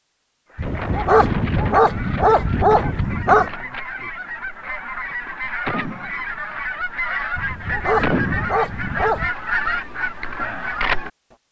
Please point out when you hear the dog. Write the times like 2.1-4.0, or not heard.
0.6-3.5, 7.3-9.3.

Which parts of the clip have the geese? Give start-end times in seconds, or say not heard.
0.5-11.1.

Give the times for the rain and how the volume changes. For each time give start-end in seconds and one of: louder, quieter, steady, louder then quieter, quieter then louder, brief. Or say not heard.
not heard.